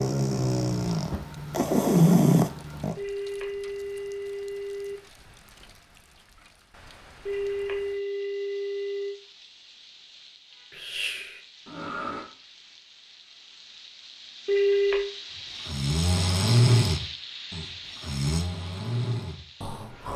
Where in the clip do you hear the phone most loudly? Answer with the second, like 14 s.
15 s.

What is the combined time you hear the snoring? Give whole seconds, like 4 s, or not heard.
9 s.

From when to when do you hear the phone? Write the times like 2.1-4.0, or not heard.
3.0-5.0, 7.2-9.2, 14.4-15.1.